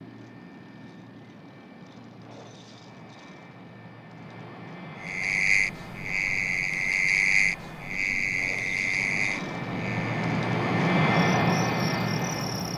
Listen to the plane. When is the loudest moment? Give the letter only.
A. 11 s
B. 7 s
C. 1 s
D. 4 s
A.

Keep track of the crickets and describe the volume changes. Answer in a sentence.
The volume of the crickets goes down.